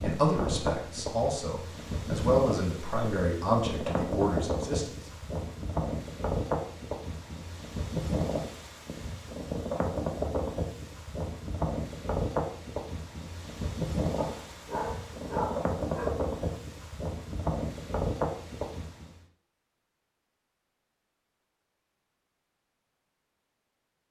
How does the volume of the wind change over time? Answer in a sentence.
The volume of the wind stays about the same.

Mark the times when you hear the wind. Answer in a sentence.
The wind can be heard from 0.0 to 19.1 s.